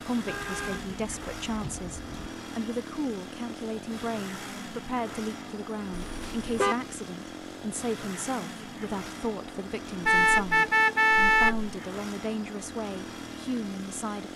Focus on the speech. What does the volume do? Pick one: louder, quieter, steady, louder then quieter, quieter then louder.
steady.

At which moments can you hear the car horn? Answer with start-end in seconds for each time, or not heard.
0.2-2.3, 5.9-6.8, 10.1-11.7.